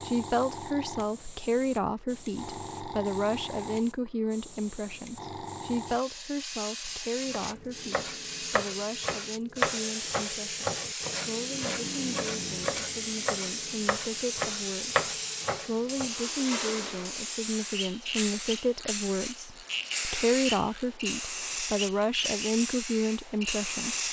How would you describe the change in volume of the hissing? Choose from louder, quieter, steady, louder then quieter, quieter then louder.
louder.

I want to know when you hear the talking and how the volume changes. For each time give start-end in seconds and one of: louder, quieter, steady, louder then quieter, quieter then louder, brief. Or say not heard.
0.0-24.0 quieter then louder.